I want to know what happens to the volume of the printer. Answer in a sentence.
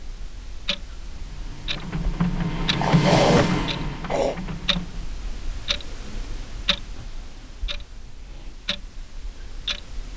The volume of the printer goes up, then down.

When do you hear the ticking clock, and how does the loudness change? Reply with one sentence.
You can hear the ticking clock from 0.0 to 10.1 s, at a steady volume.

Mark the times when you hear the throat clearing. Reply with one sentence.
The throat clearing can be heard from 2.8 to 4.3 s.